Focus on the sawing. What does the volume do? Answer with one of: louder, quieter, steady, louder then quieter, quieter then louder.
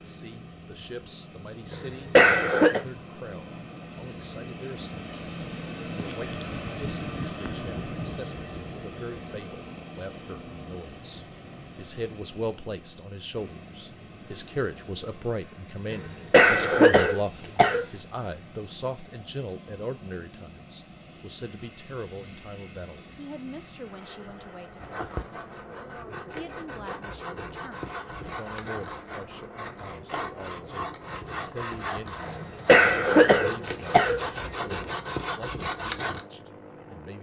louder.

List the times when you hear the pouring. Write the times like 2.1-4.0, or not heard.
not heard.